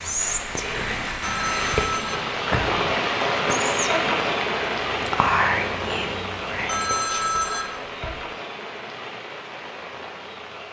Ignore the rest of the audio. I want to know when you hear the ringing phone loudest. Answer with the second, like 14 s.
7 s.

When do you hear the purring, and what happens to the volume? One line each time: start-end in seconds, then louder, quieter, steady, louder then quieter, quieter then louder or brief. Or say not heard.
not heard.